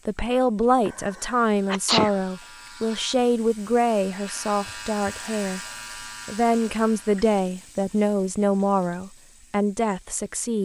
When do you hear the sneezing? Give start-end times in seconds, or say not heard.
0.8-2.1.